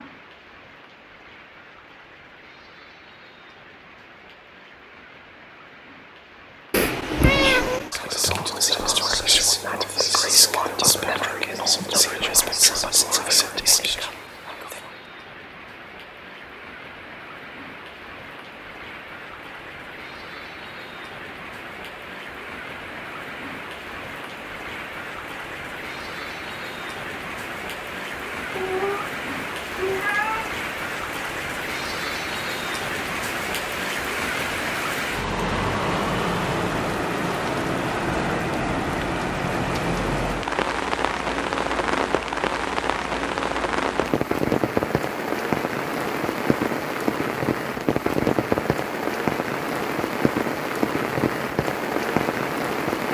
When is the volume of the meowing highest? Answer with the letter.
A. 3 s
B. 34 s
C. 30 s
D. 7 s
D.